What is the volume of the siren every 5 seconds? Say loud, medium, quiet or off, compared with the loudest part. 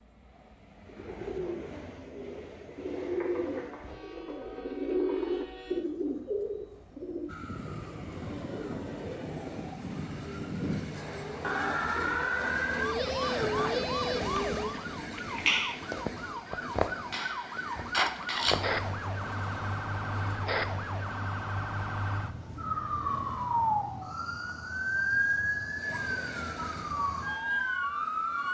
off, medium, loud, loud, loud, loud.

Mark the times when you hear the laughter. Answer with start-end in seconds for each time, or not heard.
13.2-14.4.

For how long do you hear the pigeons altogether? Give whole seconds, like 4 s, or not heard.
11 s.